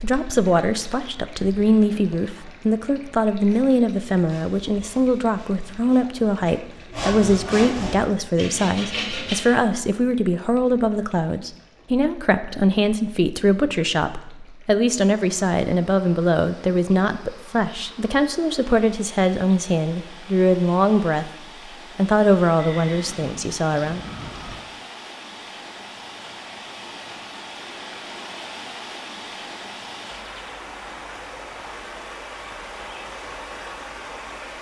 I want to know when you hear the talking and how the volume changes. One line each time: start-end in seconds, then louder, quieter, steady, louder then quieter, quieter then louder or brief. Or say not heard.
0.0-21.3 steady
21.9-24.0 brief.